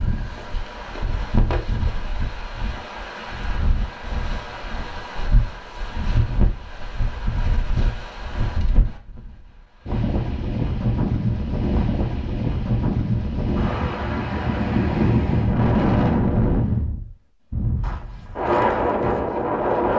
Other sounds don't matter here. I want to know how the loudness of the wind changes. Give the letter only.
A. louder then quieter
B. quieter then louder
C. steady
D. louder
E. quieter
D.